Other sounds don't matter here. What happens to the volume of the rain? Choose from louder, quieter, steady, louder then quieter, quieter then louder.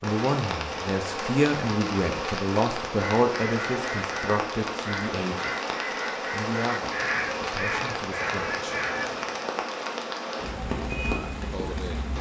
steady.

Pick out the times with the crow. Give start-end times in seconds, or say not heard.
2.9-9.5.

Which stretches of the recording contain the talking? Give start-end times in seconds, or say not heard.
0.0-5.5, 6.3-8.8, 11.1-12.1.